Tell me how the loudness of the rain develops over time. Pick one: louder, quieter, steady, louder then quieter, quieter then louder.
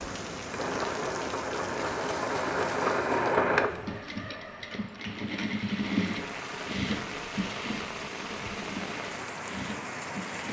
quieter then louder.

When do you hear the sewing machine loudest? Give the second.
3 s.